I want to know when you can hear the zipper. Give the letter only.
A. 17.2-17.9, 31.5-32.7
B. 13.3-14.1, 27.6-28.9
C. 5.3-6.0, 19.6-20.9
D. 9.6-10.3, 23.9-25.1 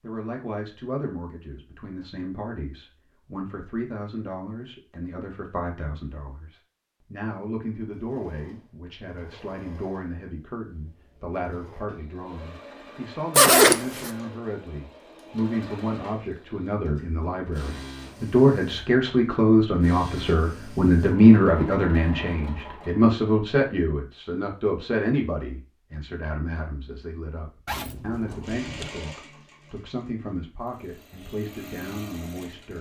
B.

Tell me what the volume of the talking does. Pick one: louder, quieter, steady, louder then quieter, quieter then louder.
louder then quieter.